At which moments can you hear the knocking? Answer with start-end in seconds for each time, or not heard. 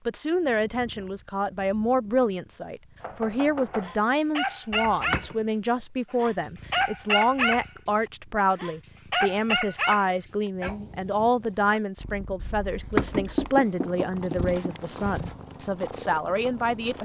3.0-4.0, 12.9-14.9.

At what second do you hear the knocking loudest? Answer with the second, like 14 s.
13 s.